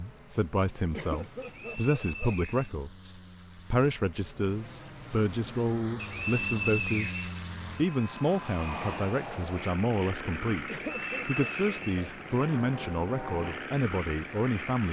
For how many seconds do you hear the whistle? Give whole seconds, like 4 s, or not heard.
5 s.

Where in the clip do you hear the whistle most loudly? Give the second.
7 s.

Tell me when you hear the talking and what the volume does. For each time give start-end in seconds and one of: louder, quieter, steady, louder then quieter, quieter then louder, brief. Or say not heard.
0.0-14.8 steady.